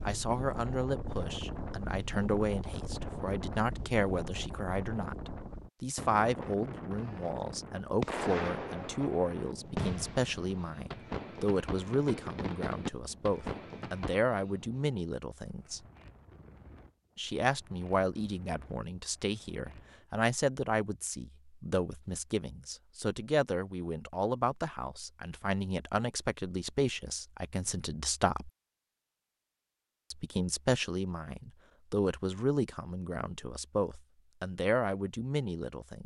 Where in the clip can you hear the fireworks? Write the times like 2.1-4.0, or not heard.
8.0-14.2.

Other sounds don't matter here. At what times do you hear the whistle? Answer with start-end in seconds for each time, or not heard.
not heard.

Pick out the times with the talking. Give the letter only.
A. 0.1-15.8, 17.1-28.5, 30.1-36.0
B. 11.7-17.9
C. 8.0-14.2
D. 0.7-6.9
A.